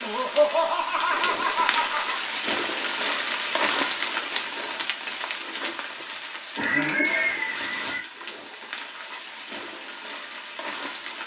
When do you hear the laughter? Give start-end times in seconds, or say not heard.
0.0-2.2, 6.5-8.1.